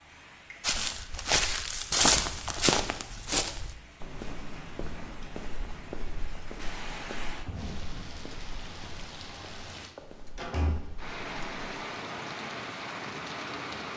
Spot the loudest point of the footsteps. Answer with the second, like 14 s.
2 s.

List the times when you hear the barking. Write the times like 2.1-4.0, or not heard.
not heard.